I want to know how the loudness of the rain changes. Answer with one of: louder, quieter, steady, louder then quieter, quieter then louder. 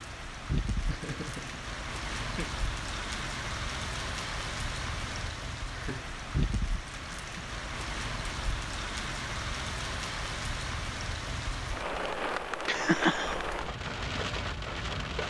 steady.